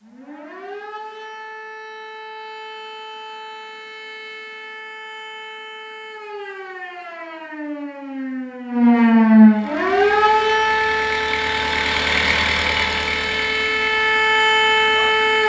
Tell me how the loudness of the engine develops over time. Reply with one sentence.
The loudness of the engine goes up, then down.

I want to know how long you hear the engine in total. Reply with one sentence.
You can hear the engine for 6 seconds altogether.